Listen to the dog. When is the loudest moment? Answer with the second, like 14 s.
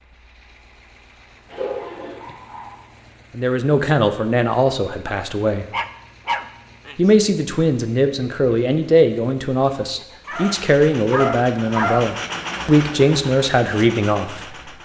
12 s.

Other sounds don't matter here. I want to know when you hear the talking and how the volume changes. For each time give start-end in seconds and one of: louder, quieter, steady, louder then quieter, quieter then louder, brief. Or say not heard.
3.4-5.7 brief
7.0-14.7 steady.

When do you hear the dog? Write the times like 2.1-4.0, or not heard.
1.5-2.8, 5.7-7.1, 10.2-12.2.